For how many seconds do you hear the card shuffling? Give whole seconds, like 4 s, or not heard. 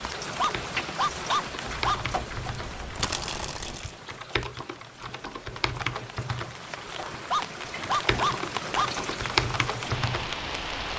2 s.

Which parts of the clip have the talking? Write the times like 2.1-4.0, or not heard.
not heard.